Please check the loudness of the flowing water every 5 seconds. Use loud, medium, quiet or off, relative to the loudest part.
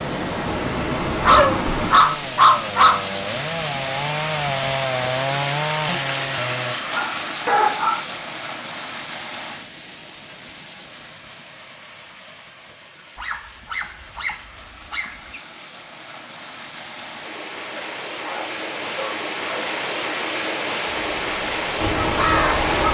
loud, loud, quiet, medium, loud.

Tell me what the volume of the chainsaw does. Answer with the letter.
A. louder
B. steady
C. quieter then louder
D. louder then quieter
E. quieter
A.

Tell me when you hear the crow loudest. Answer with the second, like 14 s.
22 s.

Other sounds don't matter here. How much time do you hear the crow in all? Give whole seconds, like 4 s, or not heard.
2 s.